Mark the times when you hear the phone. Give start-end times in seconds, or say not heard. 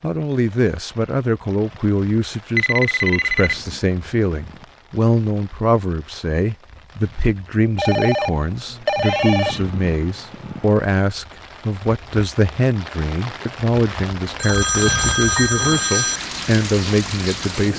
2.5-3.5, 7.8-9.6, 14.3-16.2.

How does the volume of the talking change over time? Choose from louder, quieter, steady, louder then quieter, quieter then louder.
steady.